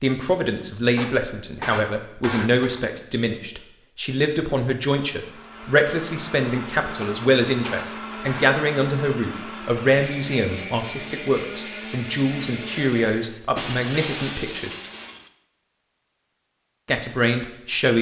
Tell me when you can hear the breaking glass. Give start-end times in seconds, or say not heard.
0.9-2.9, 7.0-8.6, 13.6-15.3.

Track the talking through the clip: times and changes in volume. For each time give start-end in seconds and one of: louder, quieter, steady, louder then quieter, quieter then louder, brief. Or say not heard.
0.0-14.7 steady
16.9-17.9 brief.